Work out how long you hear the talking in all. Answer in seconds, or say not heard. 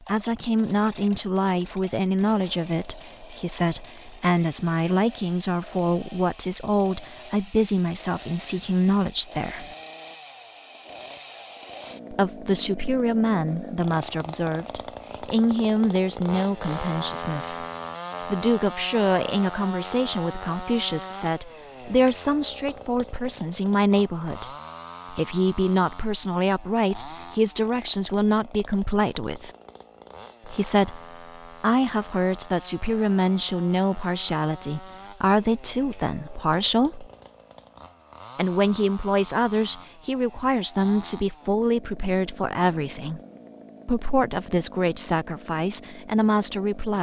41 s.